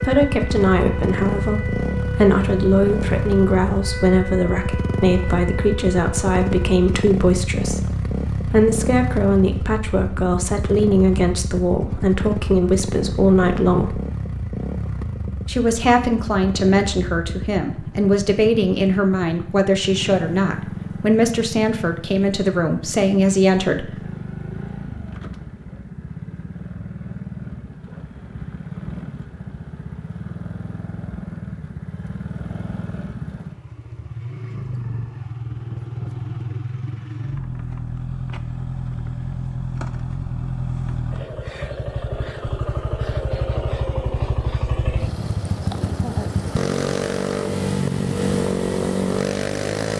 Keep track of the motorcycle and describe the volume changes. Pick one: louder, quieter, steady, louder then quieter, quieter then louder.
quieter then louder.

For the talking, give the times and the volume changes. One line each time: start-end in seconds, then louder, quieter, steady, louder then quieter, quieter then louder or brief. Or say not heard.
0.0-14.0 steady
15.4-24.1 steady.